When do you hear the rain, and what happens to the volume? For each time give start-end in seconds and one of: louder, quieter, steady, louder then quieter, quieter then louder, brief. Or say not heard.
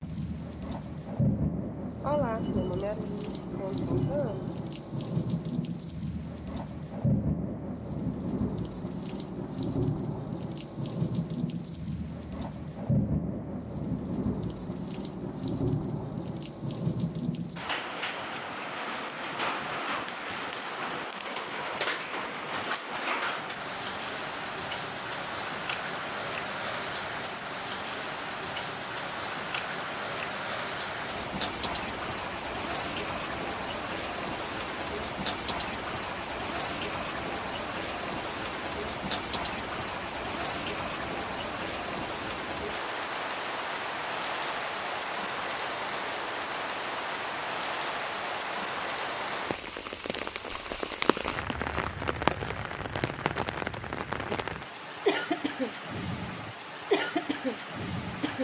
0.0-58.4 steady.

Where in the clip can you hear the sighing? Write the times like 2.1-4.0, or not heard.
2.0-4.5.